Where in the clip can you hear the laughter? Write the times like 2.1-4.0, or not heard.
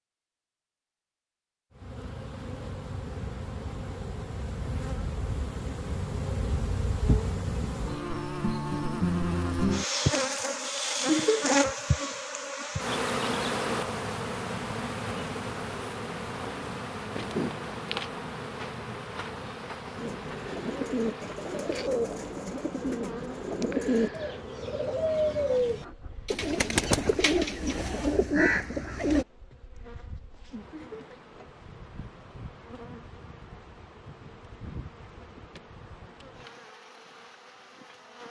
11.1-11.6, 30.7-31.2.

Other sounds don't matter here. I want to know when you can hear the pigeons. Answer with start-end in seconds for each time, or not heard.
19.9-29.2.